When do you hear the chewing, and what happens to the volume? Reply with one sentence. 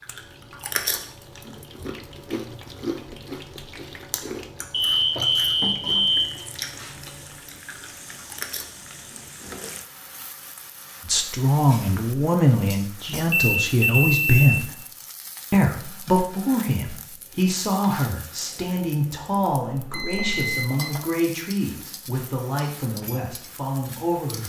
The chewing can be heard from 0.0 to 9.6 s, getting quieter.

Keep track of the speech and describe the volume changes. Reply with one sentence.
The volume of the speech goes down.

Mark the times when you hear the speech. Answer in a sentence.
You can hear the speech from 11.1 to 14.8 s and from 15.5 to 24.4 s.